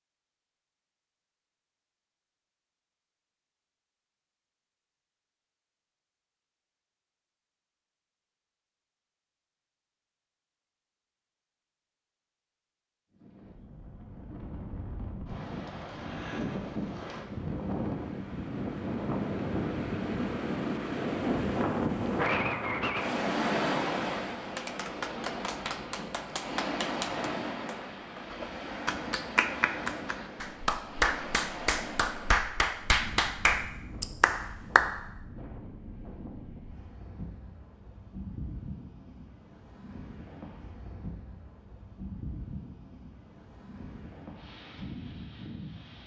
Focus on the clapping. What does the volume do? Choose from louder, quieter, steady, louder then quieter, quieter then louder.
louder.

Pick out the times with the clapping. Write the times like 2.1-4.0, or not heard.
24.4-34.9.